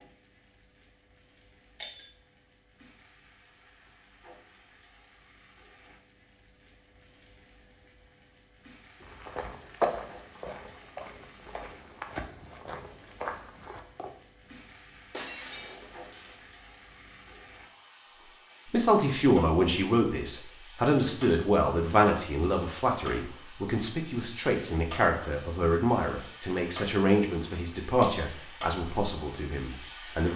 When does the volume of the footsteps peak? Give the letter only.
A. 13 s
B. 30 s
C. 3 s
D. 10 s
D.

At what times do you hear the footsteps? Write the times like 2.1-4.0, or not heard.
9.0-14.1.